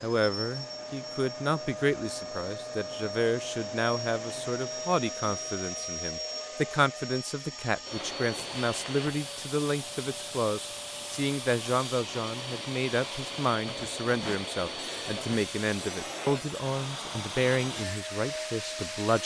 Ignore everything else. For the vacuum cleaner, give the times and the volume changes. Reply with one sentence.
The vacuum cleaner can be heard from 0.0 to 19.2 s, at a steady volume.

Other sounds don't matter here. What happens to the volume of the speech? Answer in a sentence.
The loudness of the speech stays about the same.